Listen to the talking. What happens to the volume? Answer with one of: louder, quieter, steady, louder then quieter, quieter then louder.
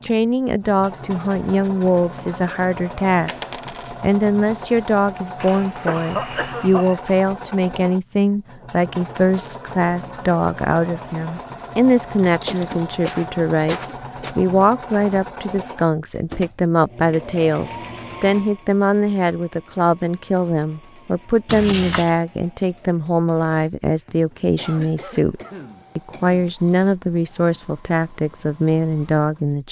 steady.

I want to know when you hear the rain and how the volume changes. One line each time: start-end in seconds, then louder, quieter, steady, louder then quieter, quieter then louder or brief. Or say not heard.
not heard.